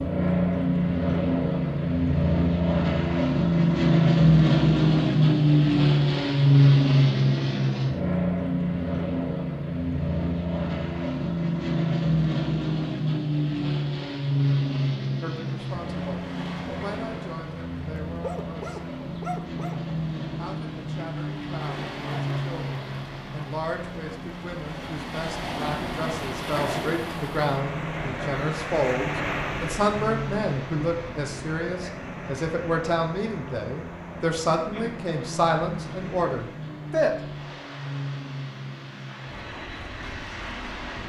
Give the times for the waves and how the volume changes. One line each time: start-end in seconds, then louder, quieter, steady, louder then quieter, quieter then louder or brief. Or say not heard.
15.5-41.0 louder then quieter.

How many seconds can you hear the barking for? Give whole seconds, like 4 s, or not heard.
2 s.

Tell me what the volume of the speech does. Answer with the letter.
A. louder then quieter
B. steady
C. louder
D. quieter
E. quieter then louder
C.